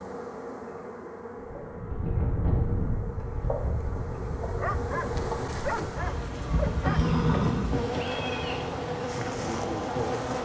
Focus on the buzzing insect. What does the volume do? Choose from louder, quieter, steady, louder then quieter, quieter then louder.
louder.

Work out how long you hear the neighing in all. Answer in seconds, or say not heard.
2 s.